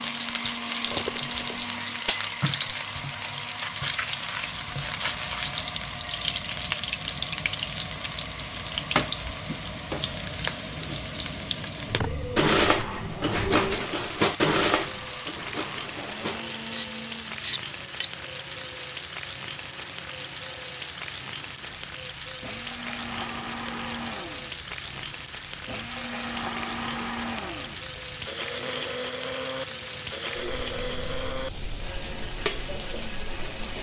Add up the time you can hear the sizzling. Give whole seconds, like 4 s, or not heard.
34 s.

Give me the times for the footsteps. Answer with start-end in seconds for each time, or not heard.
not heard.